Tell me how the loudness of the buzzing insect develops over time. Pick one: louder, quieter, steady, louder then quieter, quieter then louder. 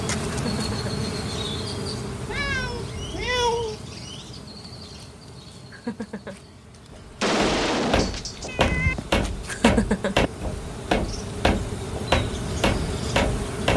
quieter then louder.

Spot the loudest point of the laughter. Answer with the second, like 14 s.
10 s.